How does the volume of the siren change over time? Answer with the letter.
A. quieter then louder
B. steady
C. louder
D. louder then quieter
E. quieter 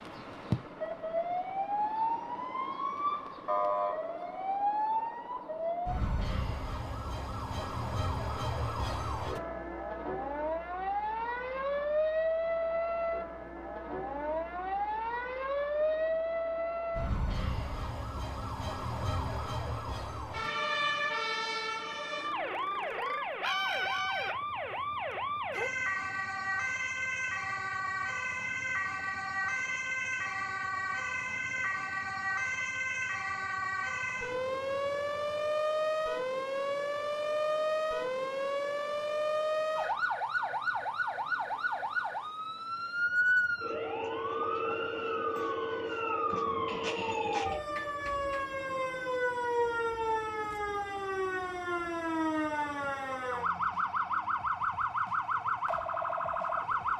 B.